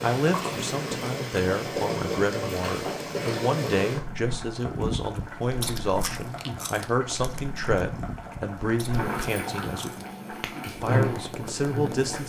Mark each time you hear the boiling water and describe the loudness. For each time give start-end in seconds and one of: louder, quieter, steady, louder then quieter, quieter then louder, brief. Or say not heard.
0.0-12.2 quieter then louder.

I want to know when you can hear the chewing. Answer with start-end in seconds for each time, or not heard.
4.6-10.2.